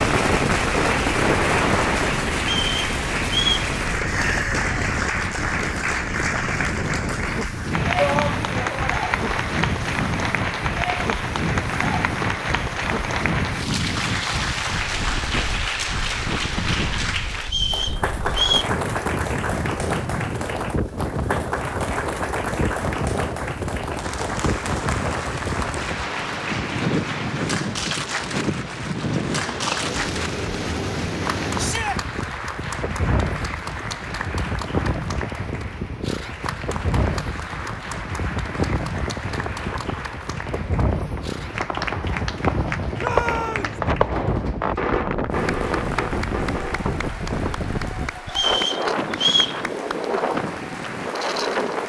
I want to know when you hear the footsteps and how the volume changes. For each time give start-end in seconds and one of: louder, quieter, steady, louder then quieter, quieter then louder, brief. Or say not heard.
not heard.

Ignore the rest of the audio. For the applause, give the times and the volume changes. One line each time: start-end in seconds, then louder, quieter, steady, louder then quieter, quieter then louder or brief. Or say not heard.
0.0-51.8 quieter.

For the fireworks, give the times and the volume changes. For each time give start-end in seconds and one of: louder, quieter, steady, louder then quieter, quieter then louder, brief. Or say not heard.
0.0-2.2 brief
39.2-48.0 louder then quieter.